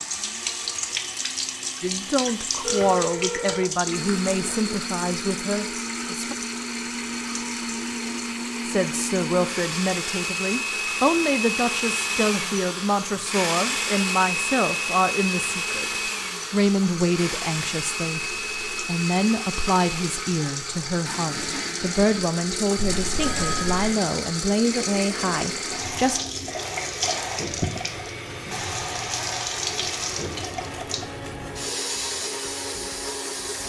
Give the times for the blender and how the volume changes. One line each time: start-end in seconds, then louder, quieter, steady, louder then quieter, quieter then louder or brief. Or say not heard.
0.0-33.6 louder then quieter.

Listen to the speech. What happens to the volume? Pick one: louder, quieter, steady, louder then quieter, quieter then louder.
steady.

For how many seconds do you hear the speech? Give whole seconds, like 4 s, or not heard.
22 s.